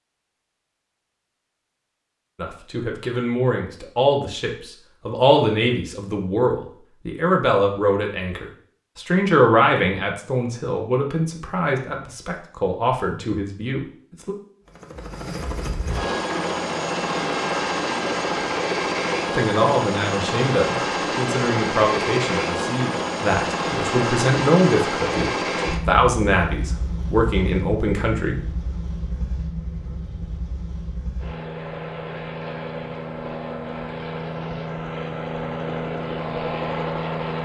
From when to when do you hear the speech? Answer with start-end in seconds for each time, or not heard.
2.4-14.3, 19.3-28.4.